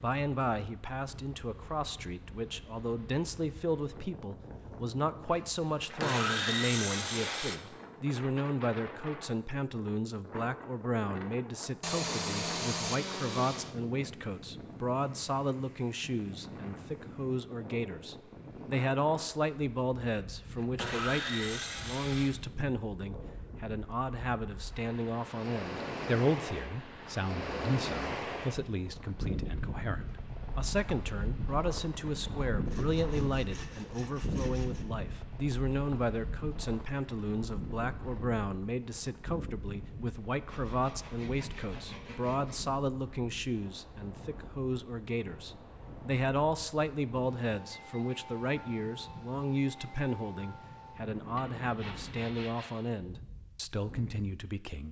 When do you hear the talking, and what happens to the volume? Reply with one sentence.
The talking can be heard from 0.0 to 54.8 s, at a steady volume.